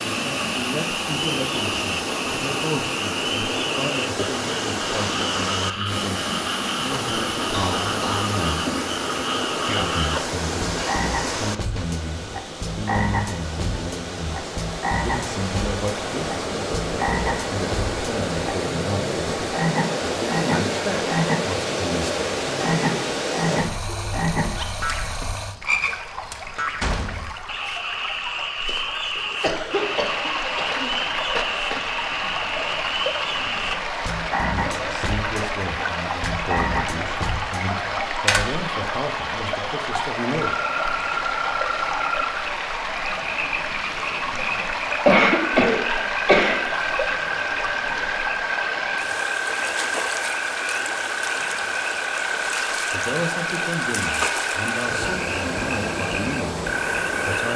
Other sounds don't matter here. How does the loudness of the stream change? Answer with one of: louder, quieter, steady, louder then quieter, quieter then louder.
steady.